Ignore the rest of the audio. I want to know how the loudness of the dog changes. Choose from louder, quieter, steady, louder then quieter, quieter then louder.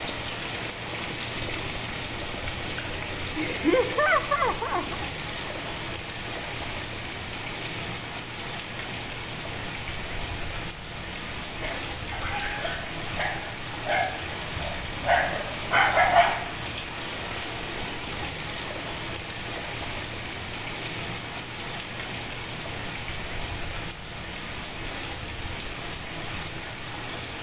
louder.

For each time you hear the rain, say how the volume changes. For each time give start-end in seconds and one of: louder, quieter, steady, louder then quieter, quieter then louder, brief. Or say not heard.
0.0-27.3 steady.